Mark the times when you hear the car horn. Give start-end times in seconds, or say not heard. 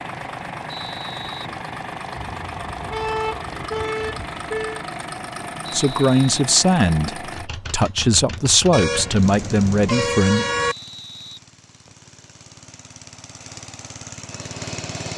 2.1-4.8, 8.7-10.8.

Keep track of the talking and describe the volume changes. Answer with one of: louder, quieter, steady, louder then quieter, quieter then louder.
quieter then louder.